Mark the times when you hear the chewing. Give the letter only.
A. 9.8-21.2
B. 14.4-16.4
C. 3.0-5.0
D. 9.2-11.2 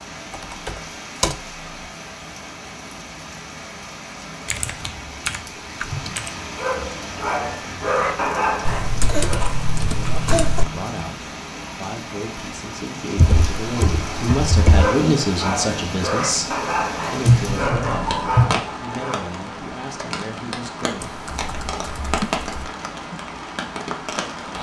D.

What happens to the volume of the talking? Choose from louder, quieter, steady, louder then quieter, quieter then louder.
louder then quieter.